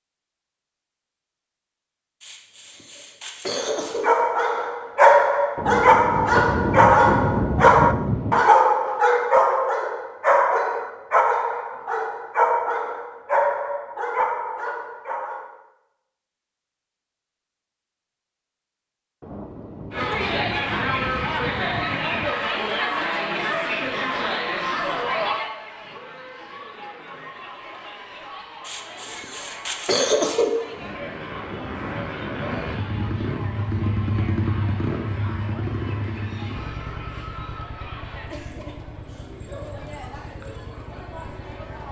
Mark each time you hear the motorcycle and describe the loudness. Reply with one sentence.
The motorcycle can be heard from 30.6 to 41.8 s, getting louder then quieter.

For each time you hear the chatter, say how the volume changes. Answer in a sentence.
You can hear the chatter from 19.9 to 41.8 s, getting quieter.